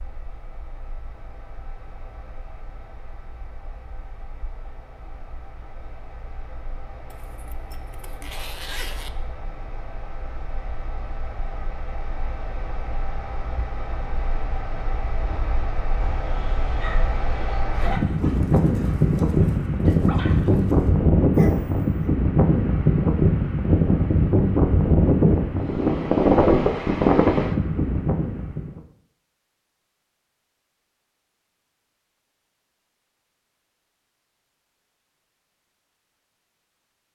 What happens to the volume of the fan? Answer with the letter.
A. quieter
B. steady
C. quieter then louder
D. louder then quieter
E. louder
E.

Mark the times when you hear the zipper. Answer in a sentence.
The zipper can be heard from 7.1 to 9.1 s.